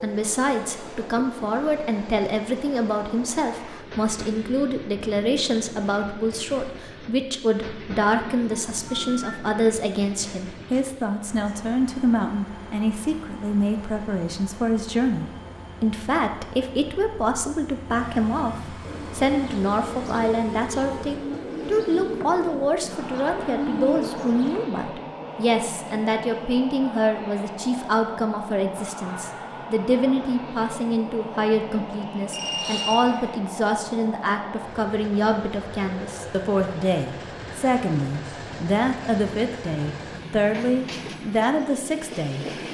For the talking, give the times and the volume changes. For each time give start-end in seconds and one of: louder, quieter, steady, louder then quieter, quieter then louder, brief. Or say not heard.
0.0-42.5 steady.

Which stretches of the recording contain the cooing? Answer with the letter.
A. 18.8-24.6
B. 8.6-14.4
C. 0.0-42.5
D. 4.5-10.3
A.